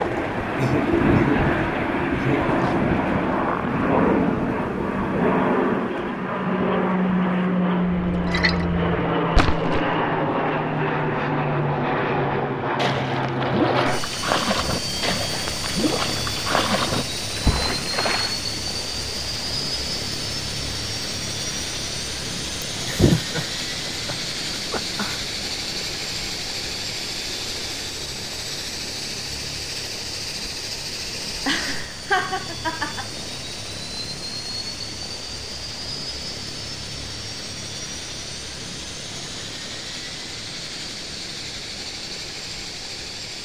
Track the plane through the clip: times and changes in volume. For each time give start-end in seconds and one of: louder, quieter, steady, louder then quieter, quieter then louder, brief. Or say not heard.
0.0-43.4 quieter.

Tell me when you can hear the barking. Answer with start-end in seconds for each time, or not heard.
not heard.